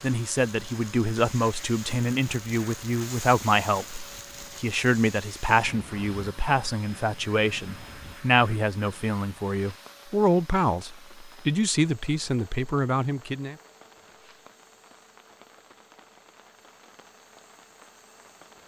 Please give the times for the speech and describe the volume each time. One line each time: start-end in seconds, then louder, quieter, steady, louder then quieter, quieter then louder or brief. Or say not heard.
0.0-13.6 steady.